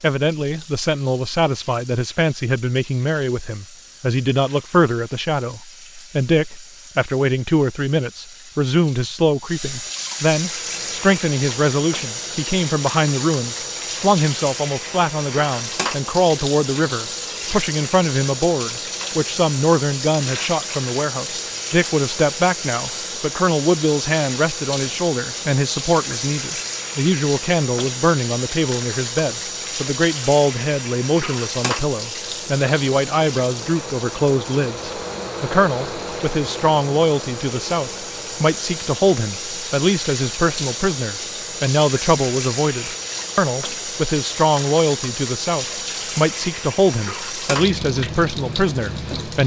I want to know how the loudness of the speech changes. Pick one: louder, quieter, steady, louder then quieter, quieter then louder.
steady.